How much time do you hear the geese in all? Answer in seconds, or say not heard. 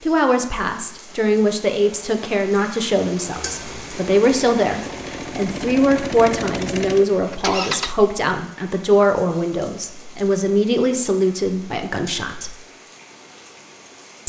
not heard.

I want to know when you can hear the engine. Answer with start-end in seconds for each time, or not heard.
3.3-8.0.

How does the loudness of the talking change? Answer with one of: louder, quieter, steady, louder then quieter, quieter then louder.
steady.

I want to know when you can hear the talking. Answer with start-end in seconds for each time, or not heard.
0.0-12.6.